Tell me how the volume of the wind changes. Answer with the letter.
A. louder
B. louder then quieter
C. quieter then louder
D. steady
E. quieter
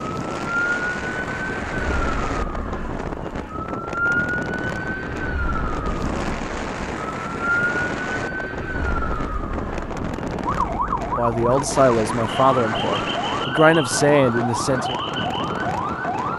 D.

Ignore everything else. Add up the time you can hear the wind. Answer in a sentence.
You can hear the wind for 16 seconds altogether.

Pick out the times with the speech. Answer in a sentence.
The speech can be heard from 11.2 to 14.9 s.